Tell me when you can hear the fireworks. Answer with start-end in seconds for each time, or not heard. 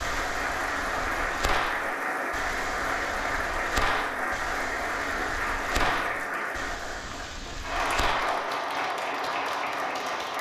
0.0-8.4.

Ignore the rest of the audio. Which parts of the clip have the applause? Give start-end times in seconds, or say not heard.
0.0-10.3.